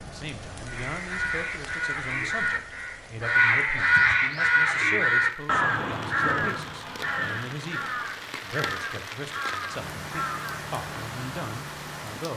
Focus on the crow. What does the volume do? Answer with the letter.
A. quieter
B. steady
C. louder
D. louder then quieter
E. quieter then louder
D.